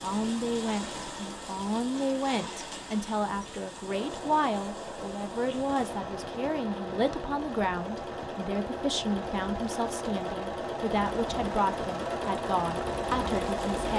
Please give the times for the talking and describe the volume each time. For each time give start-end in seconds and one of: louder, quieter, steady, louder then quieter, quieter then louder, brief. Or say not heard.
0.0-13.9 steady.